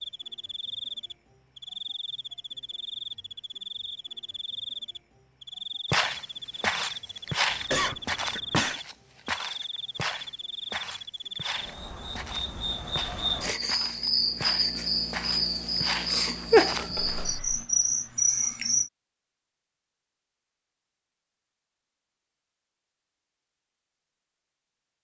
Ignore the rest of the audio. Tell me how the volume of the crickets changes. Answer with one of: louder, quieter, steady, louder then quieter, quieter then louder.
louder.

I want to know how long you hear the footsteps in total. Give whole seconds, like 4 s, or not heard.
12 s.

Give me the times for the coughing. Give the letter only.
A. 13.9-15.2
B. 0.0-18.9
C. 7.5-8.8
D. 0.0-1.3
C.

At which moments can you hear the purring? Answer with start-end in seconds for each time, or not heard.
not heard.